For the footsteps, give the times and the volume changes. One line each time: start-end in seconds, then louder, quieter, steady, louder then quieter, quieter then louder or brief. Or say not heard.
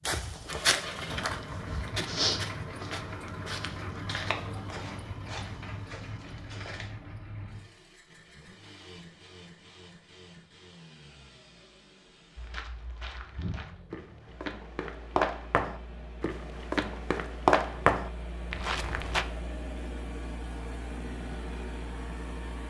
0.1-6.9 quieter
12.3-19.2 louder.